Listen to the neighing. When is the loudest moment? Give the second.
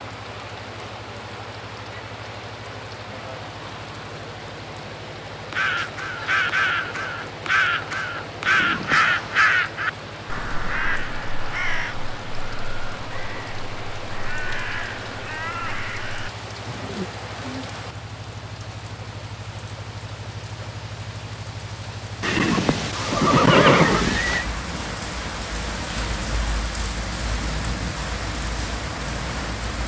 24 s.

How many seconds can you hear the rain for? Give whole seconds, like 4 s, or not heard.
30 s.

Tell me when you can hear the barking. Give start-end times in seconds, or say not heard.
not heard.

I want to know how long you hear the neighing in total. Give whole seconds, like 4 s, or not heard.
3 s.